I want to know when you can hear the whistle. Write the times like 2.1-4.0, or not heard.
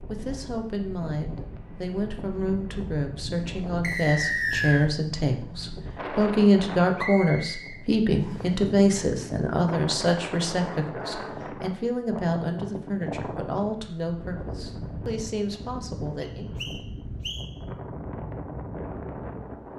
3.8-4.8, 7.0-8.4, 16.2-17.5.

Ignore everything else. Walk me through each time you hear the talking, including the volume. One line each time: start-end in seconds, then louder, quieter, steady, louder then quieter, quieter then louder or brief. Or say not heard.
0.0-16.4 louder then quieter.